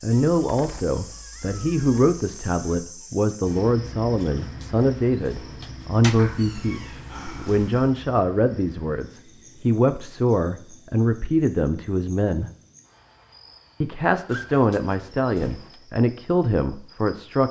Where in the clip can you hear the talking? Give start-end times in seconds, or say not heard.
0.0-12.5, 13.8-17.4.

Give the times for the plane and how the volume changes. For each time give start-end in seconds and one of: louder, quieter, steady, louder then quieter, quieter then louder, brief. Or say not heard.
not heard.